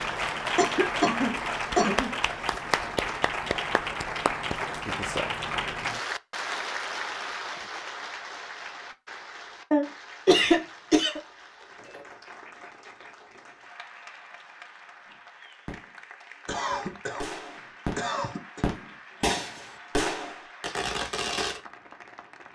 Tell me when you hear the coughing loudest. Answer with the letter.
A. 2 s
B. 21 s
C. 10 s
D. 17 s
C.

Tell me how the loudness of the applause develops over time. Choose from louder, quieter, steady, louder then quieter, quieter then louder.
quieter.